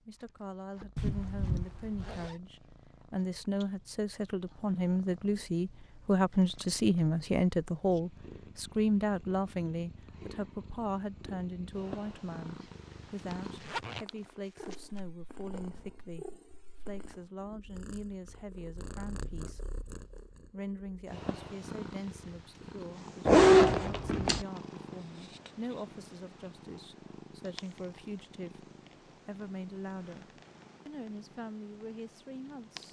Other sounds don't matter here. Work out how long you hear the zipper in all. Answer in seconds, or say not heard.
4 s.